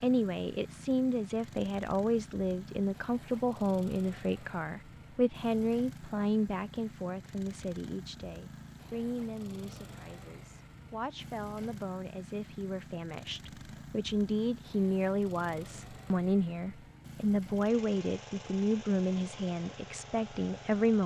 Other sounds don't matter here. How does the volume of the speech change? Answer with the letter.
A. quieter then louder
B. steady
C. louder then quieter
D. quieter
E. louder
A.